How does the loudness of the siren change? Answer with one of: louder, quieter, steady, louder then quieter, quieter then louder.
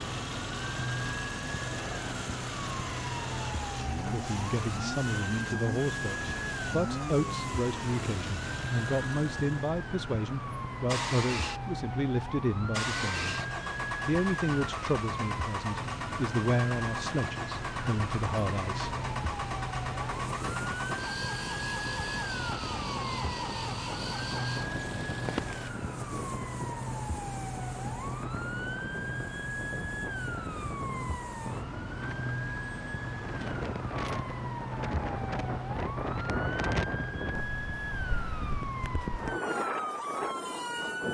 steady.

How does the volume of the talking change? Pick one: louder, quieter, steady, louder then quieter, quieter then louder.
steady.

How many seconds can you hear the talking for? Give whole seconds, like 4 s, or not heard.
14 s.